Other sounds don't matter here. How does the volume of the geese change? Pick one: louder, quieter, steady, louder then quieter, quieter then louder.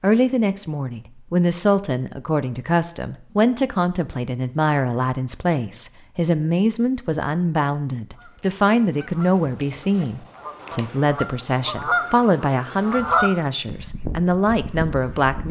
louder then quieter.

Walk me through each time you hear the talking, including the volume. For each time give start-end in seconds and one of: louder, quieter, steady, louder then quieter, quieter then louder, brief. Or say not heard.
0.0-15.4 steady.